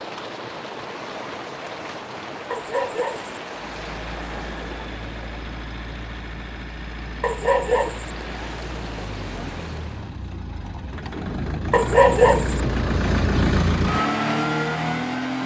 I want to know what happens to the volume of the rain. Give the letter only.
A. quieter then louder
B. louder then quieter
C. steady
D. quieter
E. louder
A.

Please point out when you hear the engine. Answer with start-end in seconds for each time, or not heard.
3.6-15.4.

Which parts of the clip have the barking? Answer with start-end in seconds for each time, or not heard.
2.5-3.4, 7.2-8.1, 11.7-12.6.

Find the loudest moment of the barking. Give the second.
12 s.